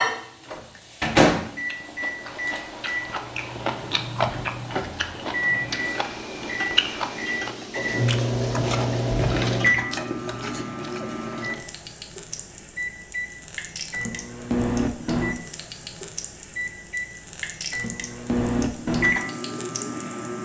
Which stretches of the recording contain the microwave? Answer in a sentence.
You can hear the microwave from 0.0 to 11.6 s, from 12.8 to 15.4 s and from 16.6 to 20.4 s.